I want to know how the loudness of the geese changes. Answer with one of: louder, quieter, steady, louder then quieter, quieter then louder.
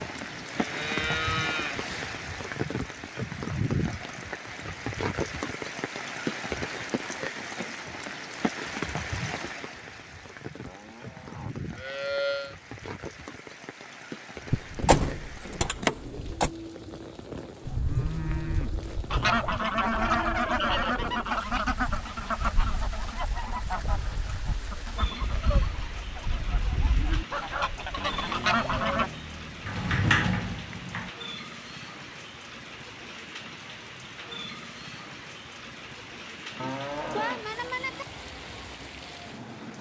quieter then louder.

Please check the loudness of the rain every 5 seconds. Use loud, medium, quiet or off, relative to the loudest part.
loud, loud, medium, medium, medium, medium, medium, medium.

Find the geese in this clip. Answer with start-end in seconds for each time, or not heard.
19.1-29.1.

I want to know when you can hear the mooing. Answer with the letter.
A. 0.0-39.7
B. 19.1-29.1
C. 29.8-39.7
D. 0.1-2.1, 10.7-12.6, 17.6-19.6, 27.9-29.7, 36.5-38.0
D.